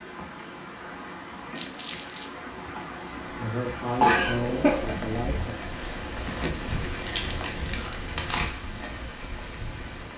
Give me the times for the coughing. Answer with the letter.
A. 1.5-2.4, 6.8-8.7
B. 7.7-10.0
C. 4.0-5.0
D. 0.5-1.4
C.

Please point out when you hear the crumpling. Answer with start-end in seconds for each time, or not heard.
1.5-2.4, 6.8-8.7.